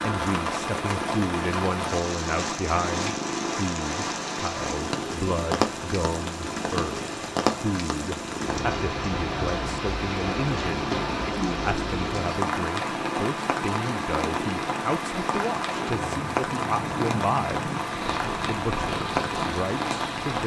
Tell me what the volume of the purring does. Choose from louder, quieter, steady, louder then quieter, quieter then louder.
steady.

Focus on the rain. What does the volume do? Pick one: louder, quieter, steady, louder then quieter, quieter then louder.
steady.